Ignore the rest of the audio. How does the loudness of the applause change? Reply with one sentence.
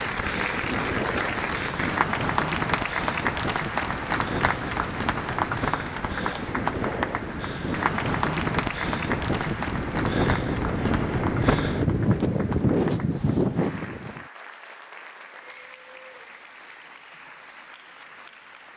The volume of the applause goes down.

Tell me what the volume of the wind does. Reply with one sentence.
The volume of the wind goes up.